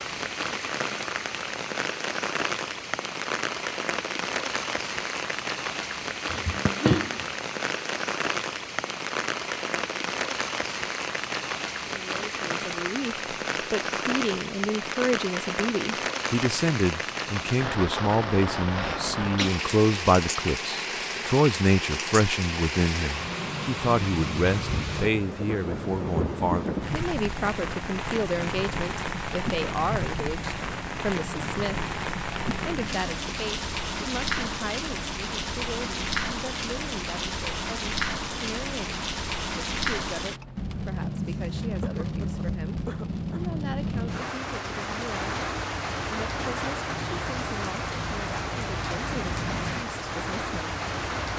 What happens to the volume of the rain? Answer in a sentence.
The volume of the rain stays about the same.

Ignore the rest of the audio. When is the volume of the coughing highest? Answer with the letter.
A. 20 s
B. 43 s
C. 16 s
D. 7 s
D.